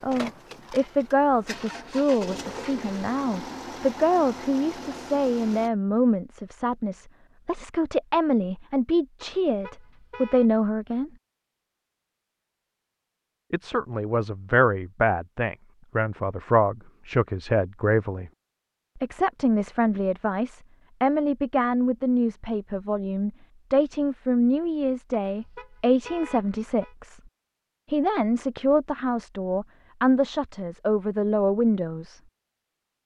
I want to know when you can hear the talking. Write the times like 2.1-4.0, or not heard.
0.0-11.1, 13.5-18.3, 18.9-27.2, 27.9-32.2.